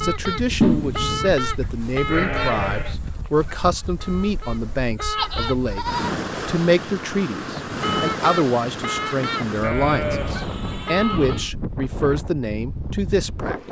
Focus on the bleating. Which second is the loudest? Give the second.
1 s.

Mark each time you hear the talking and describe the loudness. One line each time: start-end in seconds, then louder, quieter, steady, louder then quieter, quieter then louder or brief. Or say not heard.
0.0-13.6 steady.